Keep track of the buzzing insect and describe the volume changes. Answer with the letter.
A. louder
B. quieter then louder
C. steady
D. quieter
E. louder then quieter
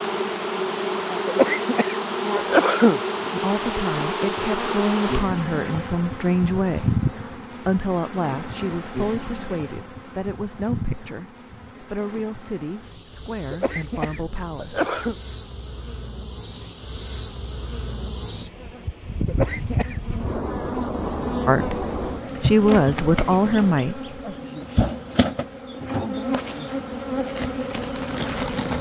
B.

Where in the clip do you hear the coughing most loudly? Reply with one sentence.
The volume of the coughing peaks at 3 seconds.